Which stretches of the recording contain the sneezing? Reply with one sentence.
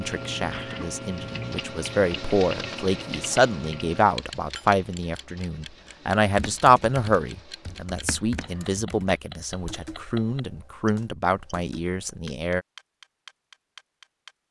You can hear the sneezing from 0.3 to 0.9 s.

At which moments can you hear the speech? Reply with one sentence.
You can hear the speech from 0.0 to 12.7 s.